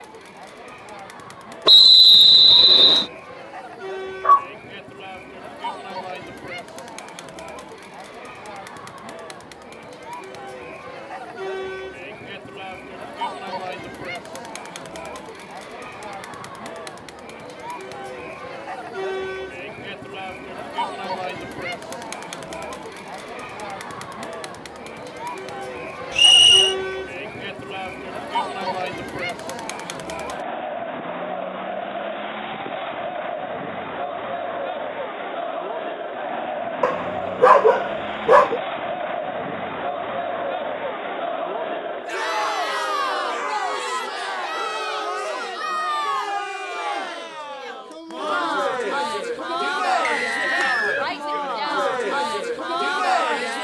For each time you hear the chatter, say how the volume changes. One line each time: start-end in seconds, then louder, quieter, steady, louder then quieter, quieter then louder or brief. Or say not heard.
0.0-53.5 louder.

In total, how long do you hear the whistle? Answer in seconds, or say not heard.
3 s.